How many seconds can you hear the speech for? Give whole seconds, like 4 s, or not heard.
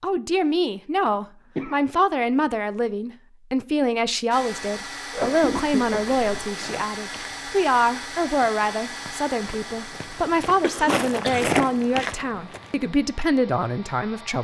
14 s.